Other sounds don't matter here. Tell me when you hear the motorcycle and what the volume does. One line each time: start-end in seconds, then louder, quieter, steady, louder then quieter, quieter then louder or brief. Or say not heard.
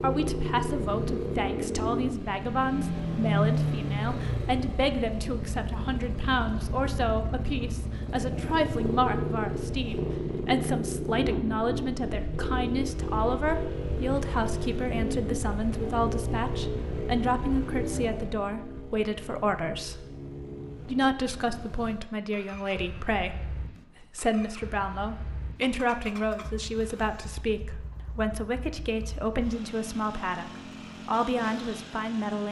0.0-32.4 quieter.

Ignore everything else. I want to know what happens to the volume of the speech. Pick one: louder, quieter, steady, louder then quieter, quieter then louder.
steady.